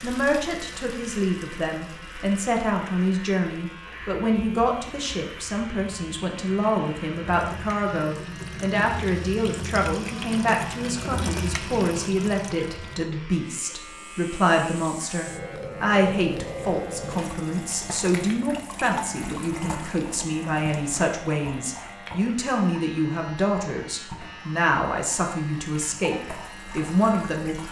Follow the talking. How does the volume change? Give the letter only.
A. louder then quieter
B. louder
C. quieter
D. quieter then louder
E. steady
E.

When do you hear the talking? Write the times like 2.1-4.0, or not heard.
0.0-27.6.